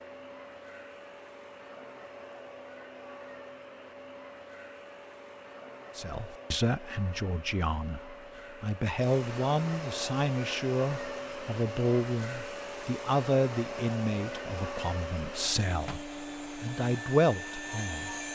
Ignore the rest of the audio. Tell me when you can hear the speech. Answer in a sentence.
The speech can be heard from 6.0 to 18.1 s.